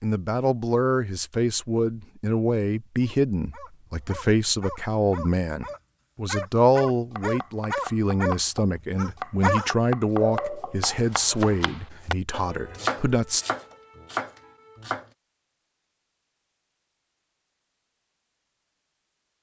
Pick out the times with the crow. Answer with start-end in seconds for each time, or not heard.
not heard.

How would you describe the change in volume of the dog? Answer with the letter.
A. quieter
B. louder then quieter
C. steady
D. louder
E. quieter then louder
D.